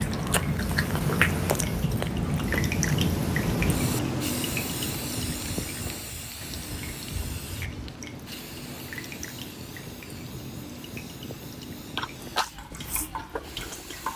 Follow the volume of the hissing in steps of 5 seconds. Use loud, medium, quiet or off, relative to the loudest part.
loud, medium, quiet.